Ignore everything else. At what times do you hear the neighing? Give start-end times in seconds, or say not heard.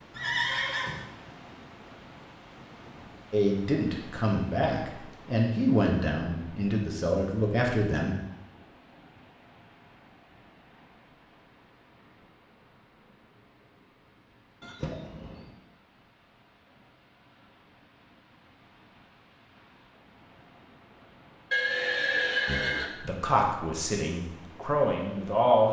0.1-1.1, 14.6-15.5, 21.5-22.9.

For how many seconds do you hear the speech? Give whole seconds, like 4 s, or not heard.
8 s.